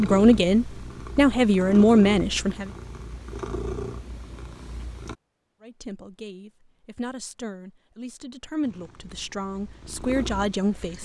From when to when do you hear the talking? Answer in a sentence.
The talking can be heard from 0.0 to 2.7 s and from 5.6 to 11.0 s.